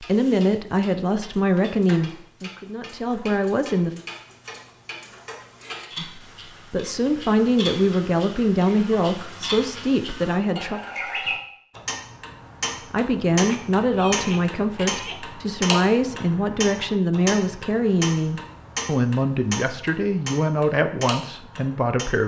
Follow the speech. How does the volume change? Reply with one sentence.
The volume of the speech stays about the same.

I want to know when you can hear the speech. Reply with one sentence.
You can hear the speech from 0.0 to 4.0 s, from 6.0 to 10.8 s and from 12.9 to 22.2 s.